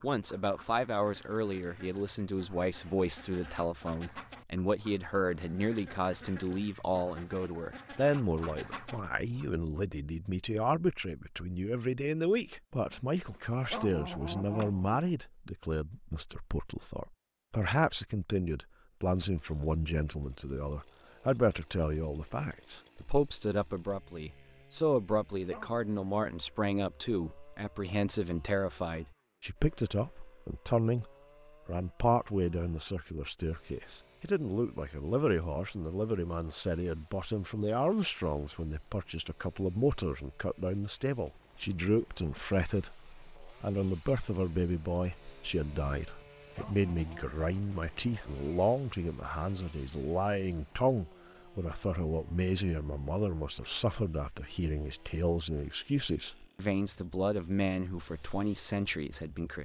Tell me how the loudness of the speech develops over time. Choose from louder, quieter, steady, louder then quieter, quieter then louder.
steady.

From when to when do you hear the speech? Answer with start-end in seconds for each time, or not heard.
0.0-59.6.